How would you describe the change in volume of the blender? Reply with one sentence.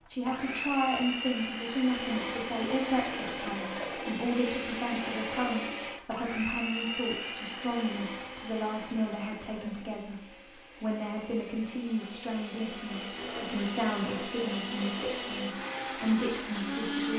The volume of the blender goes down, then up.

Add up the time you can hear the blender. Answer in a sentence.
You can hear the blender for 17 seconds altogether.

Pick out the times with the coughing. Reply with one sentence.
You can't hear the coughing here.